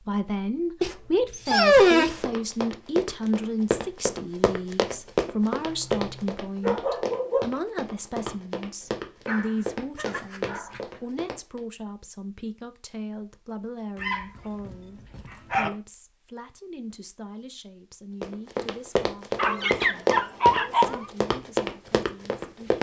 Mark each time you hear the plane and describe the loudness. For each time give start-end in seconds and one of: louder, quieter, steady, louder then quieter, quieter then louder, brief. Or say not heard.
not heard.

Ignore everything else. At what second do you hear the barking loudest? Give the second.
2 s.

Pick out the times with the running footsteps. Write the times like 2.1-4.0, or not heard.
1.5-11.6, 18.2-22.7.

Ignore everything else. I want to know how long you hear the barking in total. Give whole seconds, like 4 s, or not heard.
7 s.